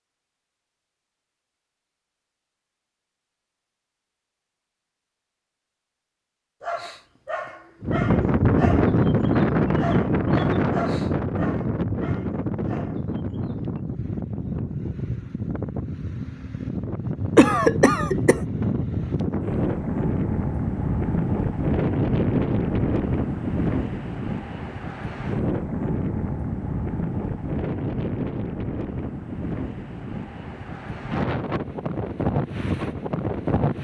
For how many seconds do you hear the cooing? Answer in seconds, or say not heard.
not heard.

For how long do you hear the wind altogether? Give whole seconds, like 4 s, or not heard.
26 s.